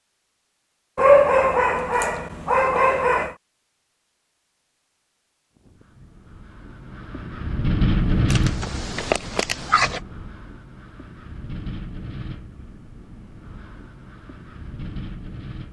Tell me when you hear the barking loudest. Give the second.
1 s.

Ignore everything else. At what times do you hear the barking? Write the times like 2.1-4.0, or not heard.
0.9-3.4, 8.3-10.0.